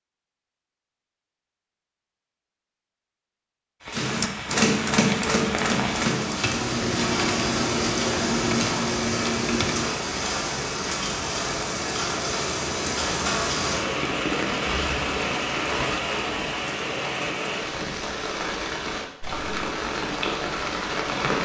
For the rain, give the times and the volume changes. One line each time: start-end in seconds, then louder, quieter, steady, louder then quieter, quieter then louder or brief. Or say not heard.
3.8-21.4 steady.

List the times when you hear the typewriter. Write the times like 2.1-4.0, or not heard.
3.9-9.9.